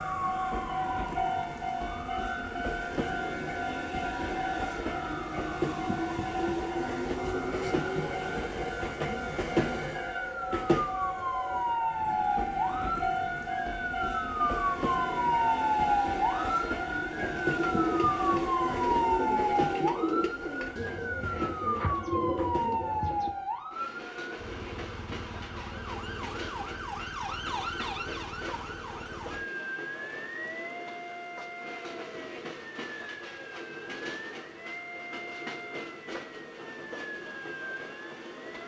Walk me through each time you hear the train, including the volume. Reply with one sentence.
The train can be heard from 0.0 to 38.6 s, getting quieter.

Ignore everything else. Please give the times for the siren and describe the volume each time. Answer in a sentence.
You can hear the siren from 0.0 to 38.6 s, getting louder then quieter.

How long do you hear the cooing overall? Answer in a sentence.
You can hear the cooing for 6 seconds altogether.